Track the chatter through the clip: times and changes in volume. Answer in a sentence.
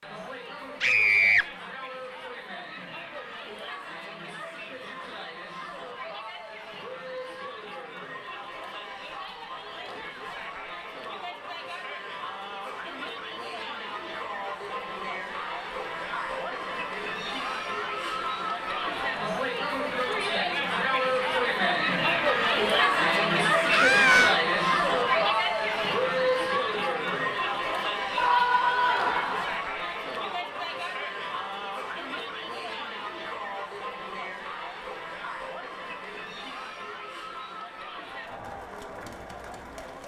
You can hear the chatter from 0.0 to 40.0 s, getting louder then quieter.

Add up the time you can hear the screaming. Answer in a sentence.
You can hear the screaming for 3 seconds altogether.